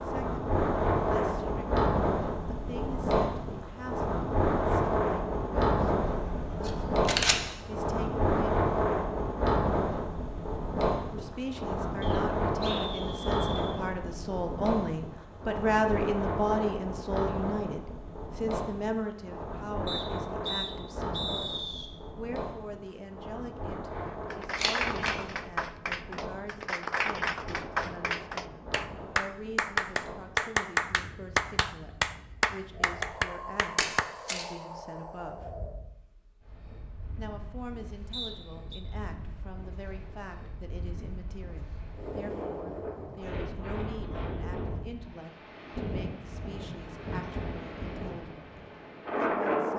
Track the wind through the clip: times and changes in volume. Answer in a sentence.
You can hear the wind from 0.0 to 49.7 s, getting quieter then louder.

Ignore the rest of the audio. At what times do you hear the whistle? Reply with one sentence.
The whistle can be heard from 12.0 to 13.8 s, from 19.9 to 21.9 s and from 38.1 to 38.8 s.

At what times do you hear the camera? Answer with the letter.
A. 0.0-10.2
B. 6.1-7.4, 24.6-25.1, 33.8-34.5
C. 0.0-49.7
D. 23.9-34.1
B.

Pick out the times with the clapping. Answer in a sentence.
You can hear the clapping from 23.9 to 34.1 s.